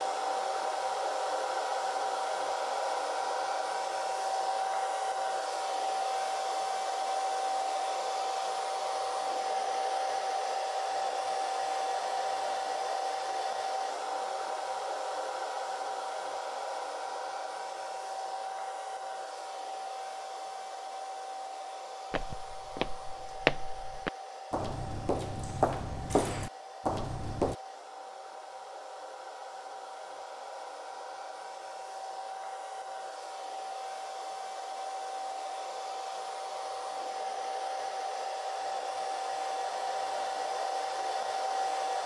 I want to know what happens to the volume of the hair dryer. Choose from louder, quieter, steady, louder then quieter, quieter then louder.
quieter then louder.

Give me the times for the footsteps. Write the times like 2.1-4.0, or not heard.
22.1-27.6.